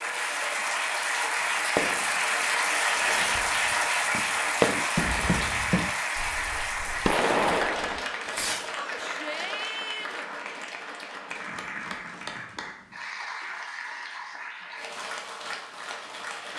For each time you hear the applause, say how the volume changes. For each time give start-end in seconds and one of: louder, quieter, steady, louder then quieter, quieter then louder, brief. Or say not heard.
0.0-16.5 quieter.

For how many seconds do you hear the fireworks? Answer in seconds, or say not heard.
7 s.